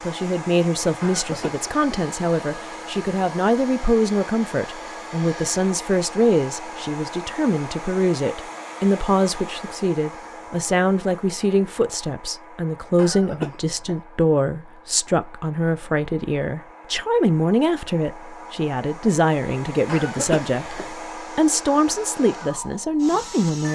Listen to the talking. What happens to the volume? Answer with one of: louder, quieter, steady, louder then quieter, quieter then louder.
steady.